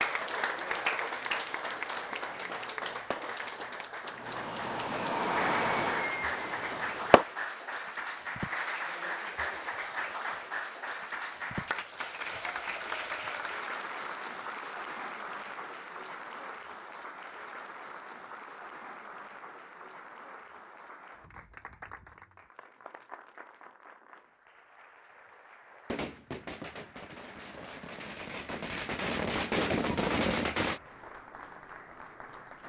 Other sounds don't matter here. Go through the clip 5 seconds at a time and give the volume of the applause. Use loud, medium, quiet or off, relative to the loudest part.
loud, loud, loud, medium, quiet, quiet, quiet.